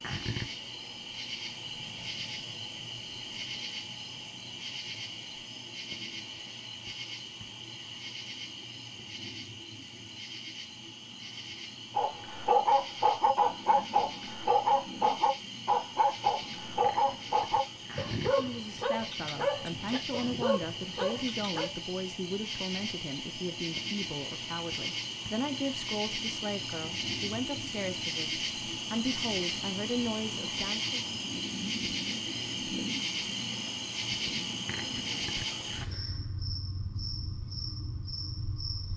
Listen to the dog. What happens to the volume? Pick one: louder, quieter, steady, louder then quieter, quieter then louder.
quieter.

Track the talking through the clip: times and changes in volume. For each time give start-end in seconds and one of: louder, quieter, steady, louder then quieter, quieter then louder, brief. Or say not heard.
18.2-30.9 steady.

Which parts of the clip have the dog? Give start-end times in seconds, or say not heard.
11.9-21.7.